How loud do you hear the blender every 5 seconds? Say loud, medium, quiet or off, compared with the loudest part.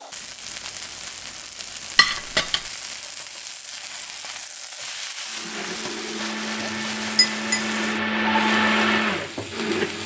off, loud.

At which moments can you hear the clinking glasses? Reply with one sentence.
The clinking glasses can be heard from 1.9 to 2.6 s and from 6.6 to 7.7 s.